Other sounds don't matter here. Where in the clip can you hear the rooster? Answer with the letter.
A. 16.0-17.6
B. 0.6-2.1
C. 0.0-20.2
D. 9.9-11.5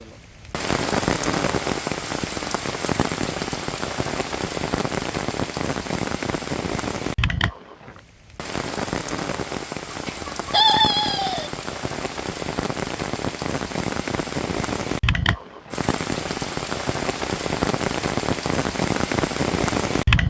D.